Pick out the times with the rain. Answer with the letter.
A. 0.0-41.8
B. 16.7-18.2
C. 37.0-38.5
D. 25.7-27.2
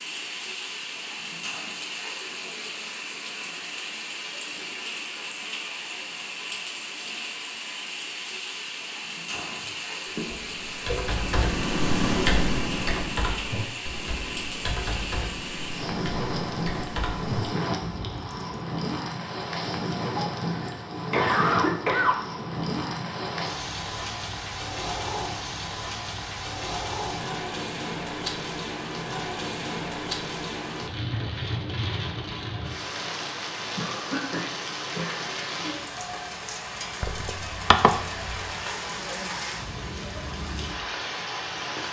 A.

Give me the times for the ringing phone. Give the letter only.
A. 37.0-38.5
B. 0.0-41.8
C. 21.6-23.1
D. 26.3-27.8
A.